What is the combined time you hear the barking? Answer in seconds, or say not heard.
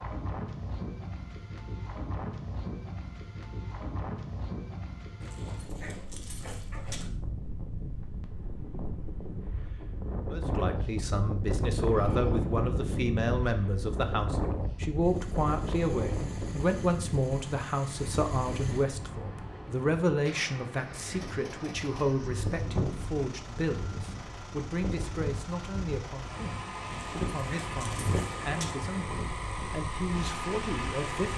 4 s.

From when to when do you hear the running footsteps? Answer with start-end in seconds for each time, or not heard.
not heard.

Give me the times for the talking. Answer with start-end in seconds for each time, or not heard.
10.3-31.3.